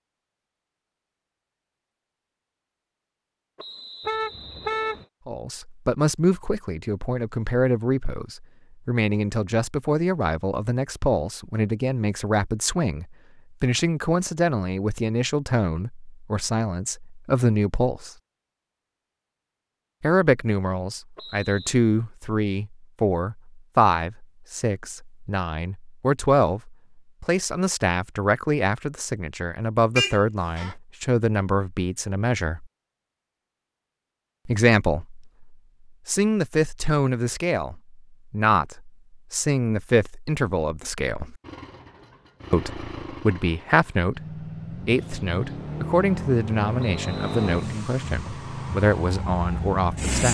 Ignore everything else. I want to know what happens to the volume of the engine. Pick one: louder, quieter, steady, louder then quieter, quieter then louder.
louder.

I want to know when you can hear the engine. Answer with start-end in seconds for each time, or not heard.
41.4-50.3.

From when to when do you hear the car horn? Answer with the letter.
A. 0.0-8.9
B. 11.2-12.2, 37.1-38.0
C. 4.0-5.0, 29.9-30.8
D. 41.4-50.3
C.